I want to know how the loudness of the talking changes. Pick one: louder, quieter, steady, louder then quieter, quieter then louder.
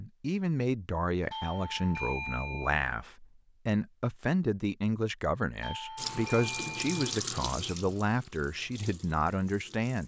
steady.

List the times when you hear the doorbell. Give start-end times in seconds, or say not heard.
1.3-2.8, 5.6-7.2.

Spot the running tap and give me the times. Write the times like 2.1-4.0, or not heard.
6.0-10.0.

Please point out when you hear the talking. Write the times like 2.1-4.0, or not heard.
0.0-10.0.